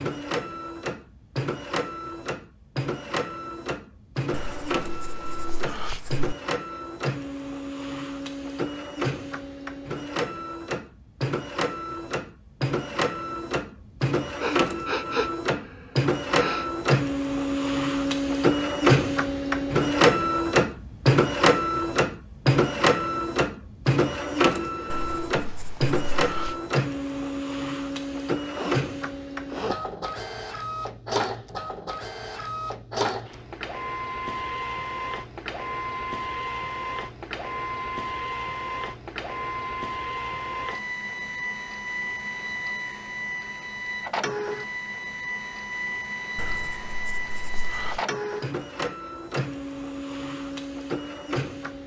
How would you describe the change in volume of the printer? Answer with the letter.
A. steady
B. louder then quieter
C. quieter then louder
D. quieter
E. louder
B.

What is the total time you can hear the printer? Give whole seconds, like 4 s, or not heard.
52 s.